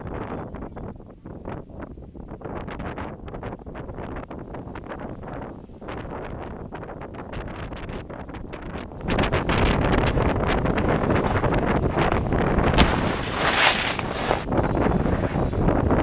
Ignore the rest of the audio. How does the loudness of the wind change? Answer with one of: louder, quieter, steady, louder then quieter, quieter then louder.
louder.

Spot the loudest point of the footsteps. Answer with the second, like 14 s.
14 s.